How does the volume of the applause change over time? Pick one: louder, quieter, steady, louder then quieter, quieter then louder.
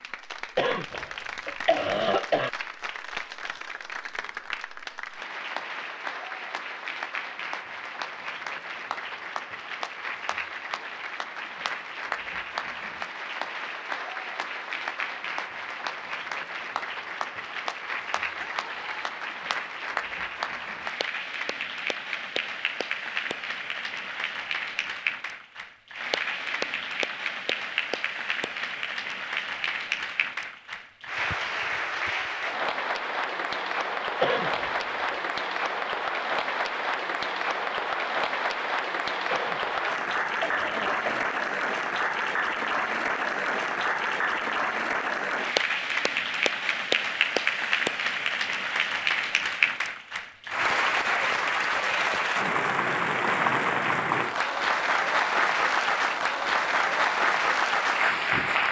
louder.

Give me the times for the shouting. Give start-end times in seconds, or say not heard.
18.4-19.2.